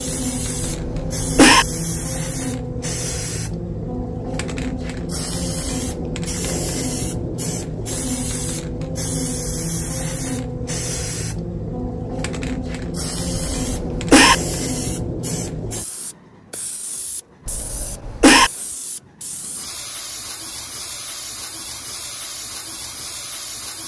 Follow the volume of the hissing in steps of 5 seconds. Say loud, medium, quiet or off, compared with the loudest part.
loud, loud, loud, medium, medium.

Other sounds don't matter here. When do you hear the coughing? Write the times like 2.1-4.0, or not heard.
0.6-1.6, 13.6-14.3, 17.4-18.5.